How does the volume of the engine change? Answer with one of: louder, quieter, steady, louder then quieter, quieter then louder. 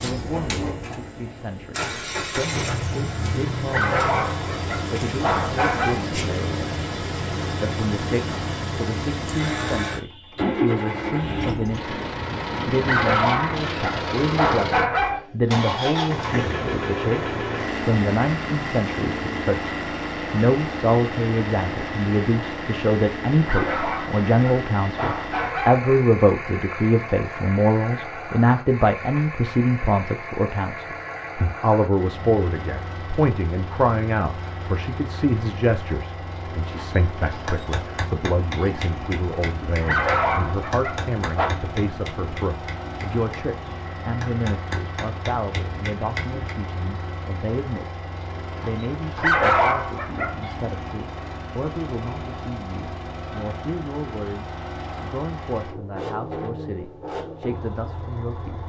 quieter.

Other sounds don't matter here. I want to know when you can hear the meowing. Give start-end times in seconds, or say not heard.
not heard.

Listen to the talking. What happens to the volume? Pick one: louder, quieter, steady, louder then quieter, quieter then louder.
louder then quieter.